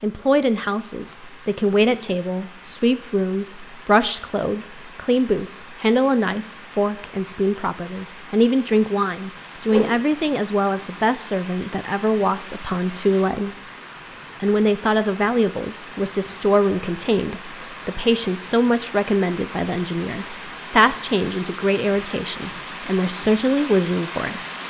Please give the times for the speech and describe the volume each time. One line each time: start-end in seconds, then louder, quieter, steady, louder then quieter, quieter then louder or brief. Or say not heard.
0.0-13.6 steady
14.4-24.4 steady.